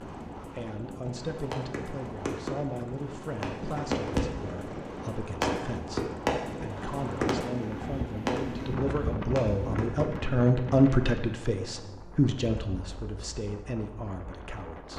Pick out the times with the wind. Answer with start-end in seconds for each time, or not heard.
0.0-14.9.